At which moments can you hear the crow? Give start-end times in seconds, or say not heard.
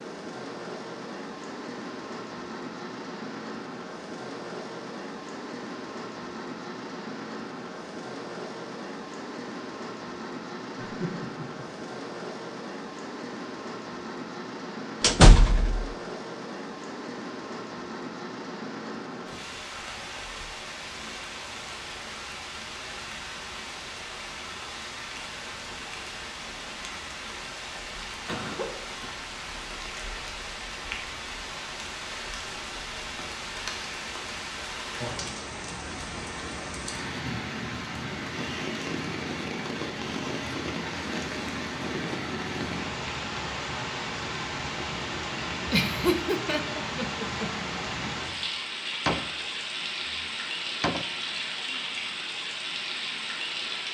not heard.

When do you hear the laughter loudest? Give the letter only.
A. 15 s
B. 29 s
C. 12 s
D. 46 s
D.